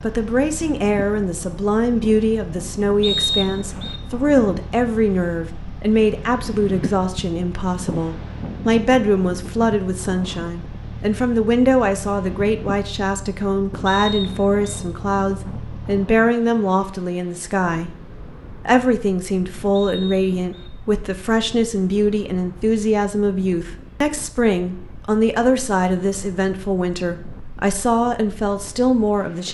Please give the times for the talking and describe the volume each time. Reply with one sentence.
You can hear the talking from 0.0 to 29.5 s, at a steady volume.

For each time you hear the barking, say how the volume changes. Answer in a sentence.
You can't hear the barking here.